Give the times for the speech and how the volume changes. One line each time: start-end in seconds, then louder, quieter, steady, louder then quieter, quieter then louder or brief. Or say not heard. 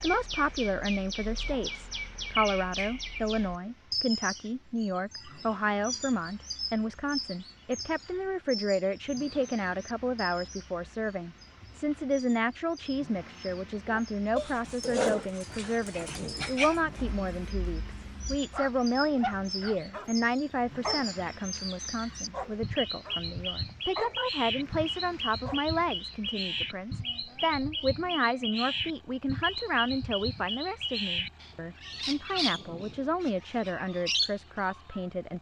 0.0-35.3 steady.